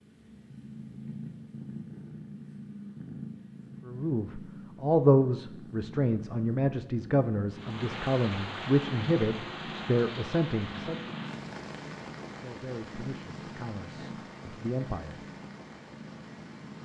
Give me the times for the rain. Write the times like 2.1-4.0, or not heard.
7.5-16.8.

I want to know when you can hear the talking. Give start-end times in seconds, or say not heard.
3.9-11.2, 12.4-15.2.